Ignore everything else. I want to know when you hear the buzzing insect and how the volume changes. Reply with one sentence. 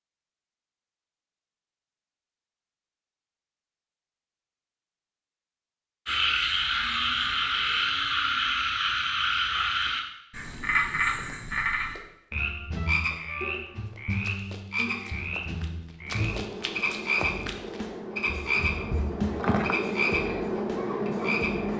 You can hear the buzzing insect from 16.0 to 21.7 s, getting louder.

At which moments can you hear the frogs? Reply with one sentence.
You can hear the frogs from 6.0 to 21.7 s.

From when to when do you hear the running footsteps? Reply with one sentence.
The running footsteps can be heard from 11.2 to 19.8 s.